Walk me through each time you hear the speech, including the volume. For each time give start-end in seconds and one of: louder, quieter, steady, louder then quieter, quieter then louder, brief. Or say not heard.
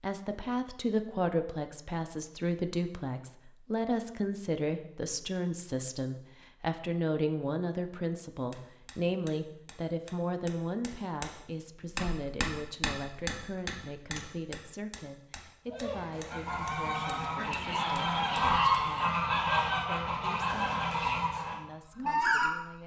0.0-22.8 quieter.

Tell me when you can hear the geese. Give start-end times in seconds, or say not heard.
15.7-22.8.